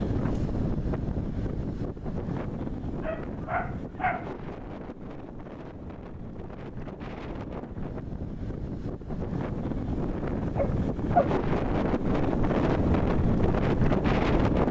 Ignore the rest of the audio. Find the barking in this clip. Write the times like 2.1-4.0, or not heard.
3.0-4.3, 9.8-11.3.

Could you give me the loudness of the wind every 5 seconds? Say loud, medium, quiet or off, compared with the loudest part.
medium, medium, loud.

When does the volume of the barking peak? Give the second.
11 s.